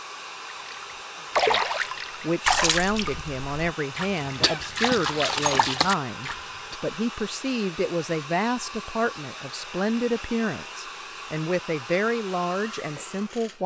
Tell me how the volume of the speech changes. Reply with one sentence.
The volume of the speech stays about the same.